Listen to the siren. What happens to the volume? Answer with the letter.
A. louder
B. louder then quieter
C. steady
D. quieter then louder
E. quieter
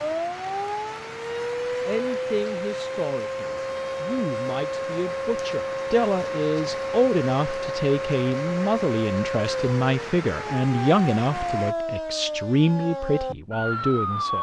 C.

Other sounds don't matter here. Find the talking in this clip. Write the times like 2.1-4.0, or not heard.
1.9-14.3.